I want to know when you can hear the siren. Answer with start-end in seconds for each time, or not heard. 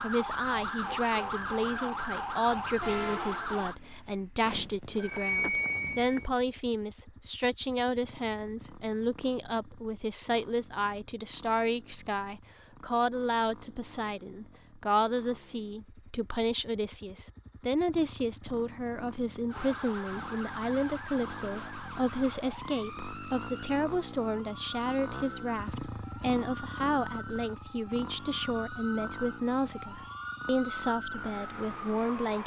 0.0-3.8, 19.5-32.4.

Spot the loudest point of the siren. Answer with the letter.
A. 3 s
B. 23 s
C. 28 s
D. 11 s
A.